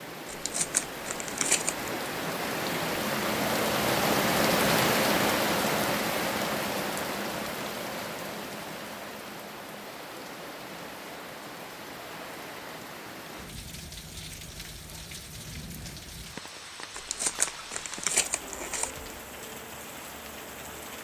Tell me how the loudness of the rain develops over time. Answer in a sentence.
The volume of the rain goes down.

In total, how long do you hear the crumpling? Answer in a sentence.
The crumpling can be heard for 4 seconds in total.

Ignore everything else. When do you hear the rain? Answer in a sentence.
You can hear the rain from 0.0 to 20.9 s.